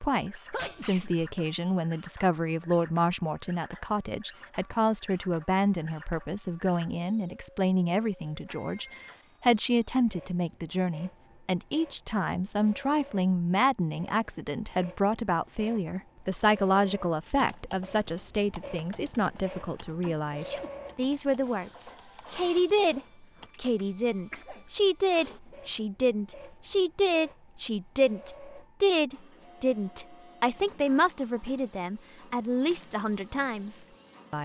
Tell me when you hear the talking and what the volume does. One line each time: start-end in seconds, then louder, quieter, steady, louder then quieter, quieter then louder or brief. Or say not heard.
0.0-34.4 steady.